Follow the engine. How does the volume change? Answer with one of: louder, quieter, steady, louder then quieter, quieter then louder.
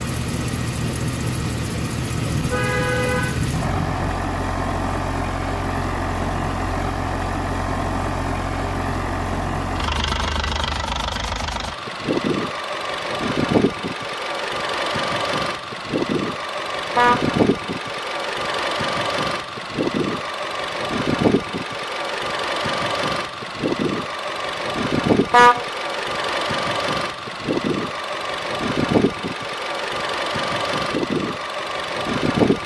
steady.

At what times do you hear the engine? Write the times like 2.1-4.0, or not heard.
0.0-32.6.